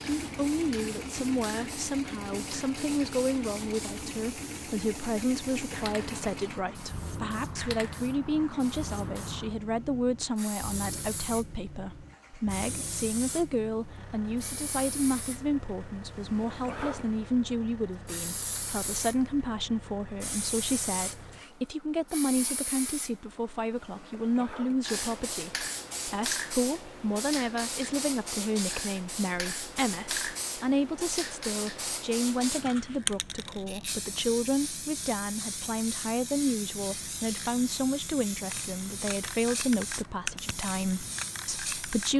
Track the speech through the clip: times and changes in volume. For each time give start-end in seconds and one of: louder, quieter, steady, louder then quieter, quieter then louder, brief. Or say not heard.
0.0-42.1 steady.